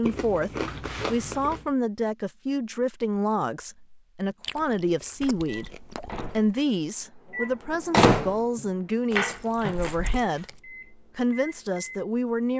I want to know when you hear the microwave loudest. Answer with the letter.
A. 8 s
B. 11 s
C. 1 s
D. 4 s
A.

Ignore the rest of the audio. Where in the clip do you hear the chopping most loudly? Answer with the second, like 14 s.
9 s.